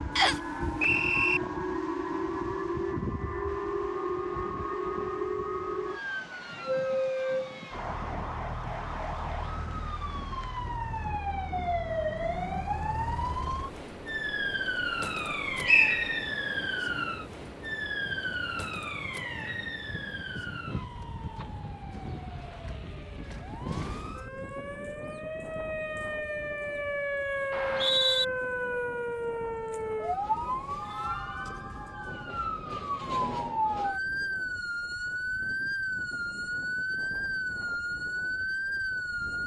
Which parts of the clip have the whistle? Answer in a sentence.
You can hear the whistle from 0.1 to 1.4 s, from 15.7 to 16.2 s and from 27.5 to 28.2 s.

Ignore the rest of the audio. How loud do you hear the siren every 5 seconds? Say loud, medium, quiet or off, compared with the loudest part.
loud, loud, loud, loud, medium, loud, loud, loud.